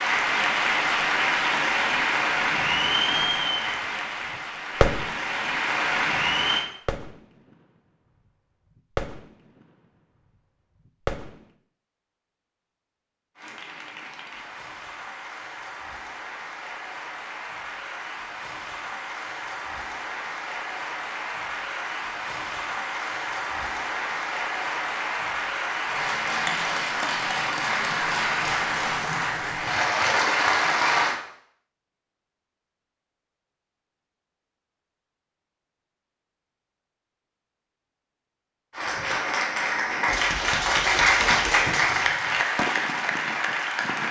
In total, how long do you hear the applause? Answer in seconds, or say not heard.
30 s.